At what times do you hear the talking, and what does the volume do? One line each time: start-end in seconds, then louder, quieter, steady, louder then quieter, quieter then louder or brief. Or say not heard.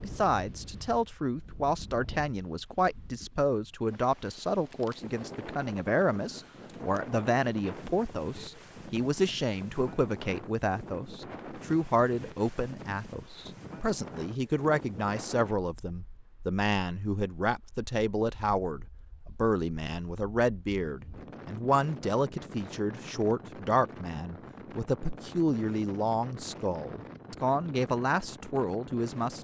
0.0-29.3 steady.